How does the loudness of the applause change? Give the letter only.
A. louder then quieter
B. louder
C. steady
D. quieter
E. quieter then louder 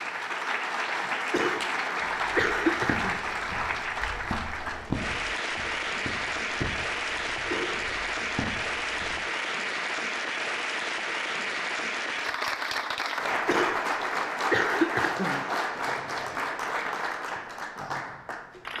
C.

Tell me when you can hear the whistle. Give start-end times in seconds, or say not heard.
not heard.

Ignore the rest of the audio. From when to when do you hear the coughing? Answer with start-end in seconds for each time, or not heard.
1.3-3.1, 7.5-7.9, 13.4-15.4.